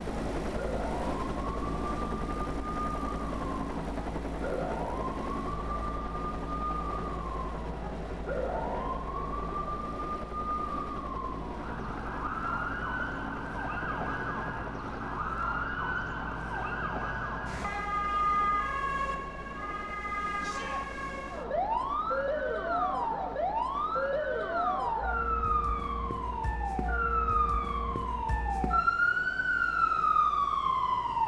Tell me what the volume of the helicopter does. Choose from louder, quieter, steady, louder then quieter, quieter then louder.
quieter.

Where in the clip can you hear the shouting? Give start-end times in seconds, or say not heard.
20.4-20.9.